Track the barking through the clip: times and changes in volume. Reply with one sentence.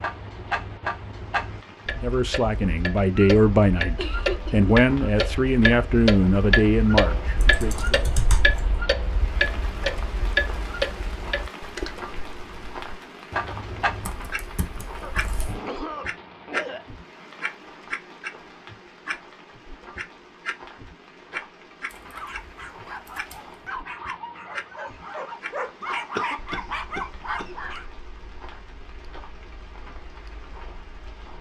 The barking can be heard from 22.1 to 27.9 s, getting louder.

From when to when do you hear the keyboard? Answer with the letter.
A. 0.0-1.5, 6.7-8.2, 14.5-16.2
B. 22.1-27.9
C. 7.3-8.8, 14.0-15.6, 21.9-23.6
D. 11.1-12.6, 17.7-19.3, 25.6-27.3
C.